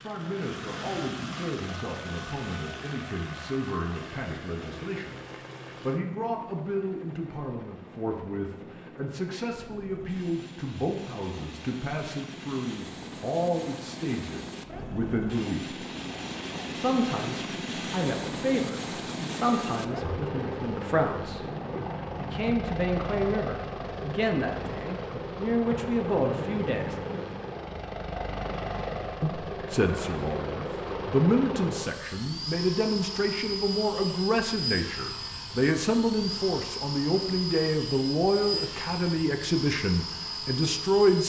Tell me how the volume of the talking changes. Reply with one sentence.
The volume of the talking goes up.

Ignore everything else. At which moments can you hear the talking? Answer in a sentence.
You can hear the talking from 0.0 to 5.2 s, from 5.8 to 15.8 s, from 16.8 to 21.4 s, from 22.1 to 26.9 s and from 29.2 to 41.2 s.